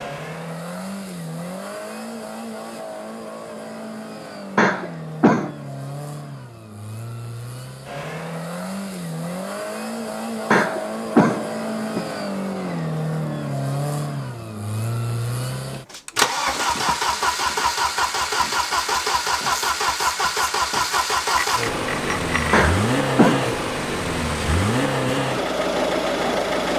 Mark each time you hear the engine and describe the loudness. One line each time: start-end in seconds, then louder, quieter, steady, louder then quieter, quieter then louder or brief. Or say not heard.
0.0-26.7 louder.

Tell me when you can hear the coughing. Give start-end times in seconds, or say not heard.
4.5-5.5, 10.5-12.1, 22.5-23.4.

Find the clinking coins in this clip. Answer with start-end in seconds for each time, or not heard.
20.9-22.6.